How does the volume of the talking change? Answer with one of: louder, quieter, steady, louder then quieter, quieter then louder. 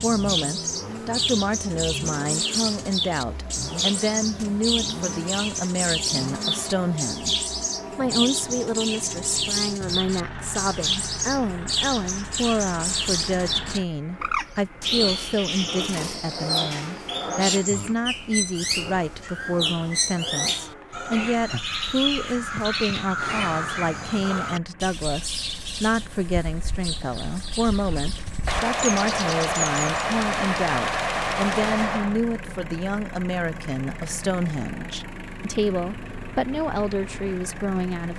steady.